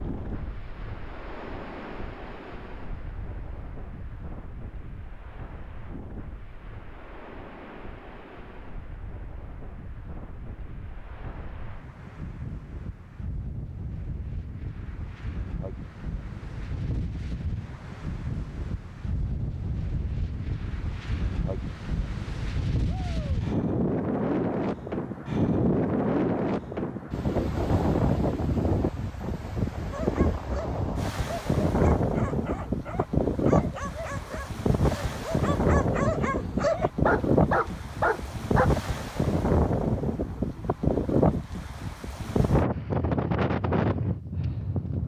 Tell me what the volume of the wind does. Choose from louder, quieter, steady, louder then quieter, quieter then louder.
louder.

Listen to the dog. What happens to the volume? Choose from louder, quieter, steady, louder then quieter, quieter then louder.
louder.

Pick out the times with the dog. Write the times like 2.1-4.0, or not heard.
29.9-38.7.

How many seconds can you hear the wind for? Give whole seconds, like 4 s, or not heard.
45 s.